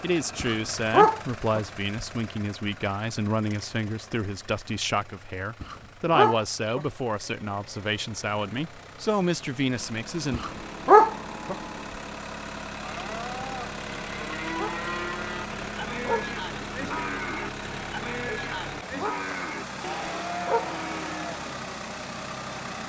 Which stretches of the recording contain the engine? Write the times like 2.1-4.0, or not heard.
0.0-22.8.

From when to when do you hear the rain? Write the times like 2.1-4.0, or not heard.
not heard.